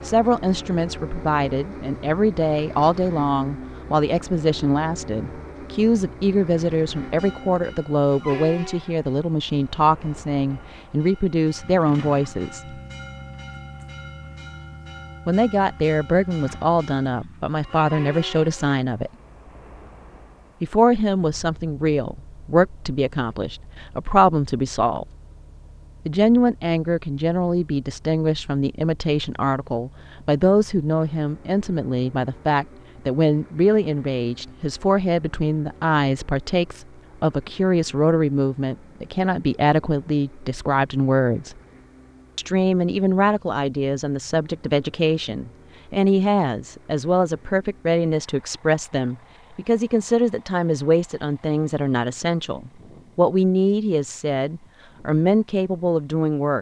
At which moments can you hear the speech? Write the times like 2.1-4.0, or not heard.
0.0-12.8, 15.2-19.1, 20.6-25.1, 26.1-41.6, 42.4-56.5.